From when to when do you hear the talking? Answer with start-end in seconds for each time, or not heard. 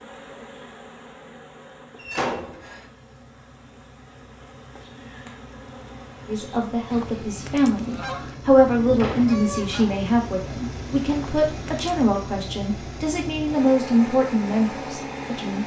6.2-15.6.